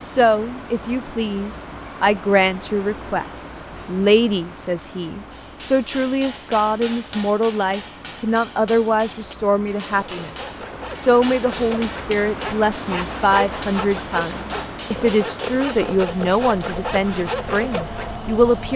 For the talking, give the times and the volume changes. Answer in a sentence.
The talking can be heard from 0.0 to 18.7 s, at a steady volume.